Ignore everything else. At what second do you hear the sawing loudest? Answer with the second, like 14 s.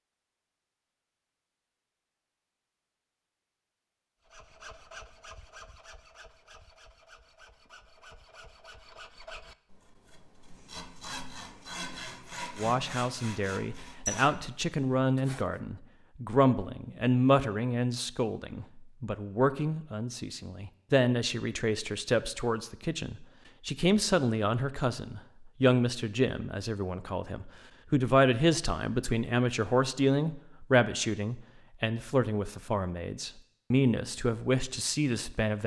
14 s.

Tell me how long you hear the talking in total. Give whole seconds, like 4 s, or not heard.
23 s.